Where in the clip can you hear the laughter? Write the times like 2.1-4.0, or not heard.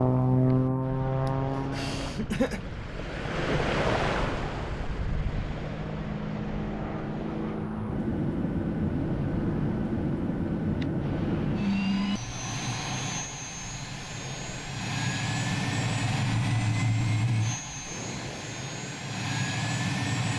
1.2-2.7.